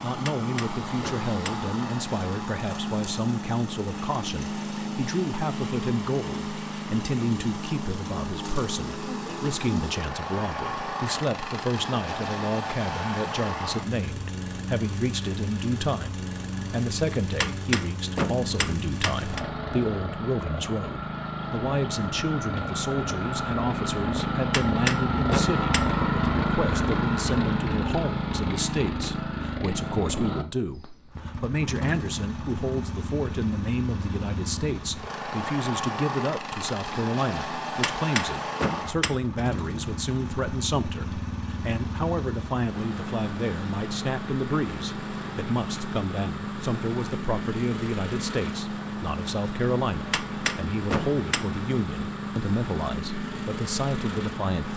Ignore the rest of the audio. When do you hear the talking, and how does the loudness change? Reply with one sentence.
The talking can be heard from 0.0 to 54.7 s, at a steady volume.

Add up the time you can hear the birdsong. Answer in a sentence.
The birdsong can't be heard in this clip.